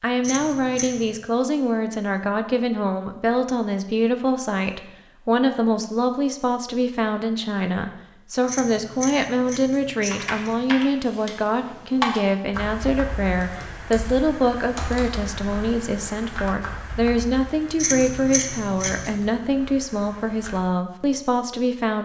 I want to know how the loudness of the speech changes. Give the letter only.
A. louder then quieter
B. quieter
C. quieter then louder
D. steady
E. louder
D.